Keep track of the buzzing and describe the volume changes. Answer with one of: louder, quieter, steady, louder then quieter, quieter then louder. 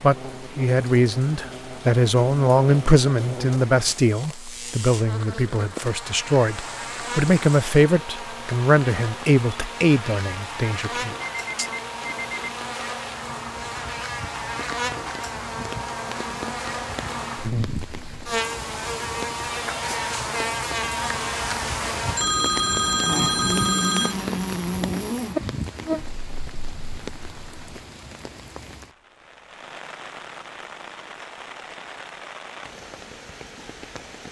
louder.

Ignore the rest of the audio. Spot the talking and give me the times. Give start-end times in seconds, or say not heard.
0.0-11.2.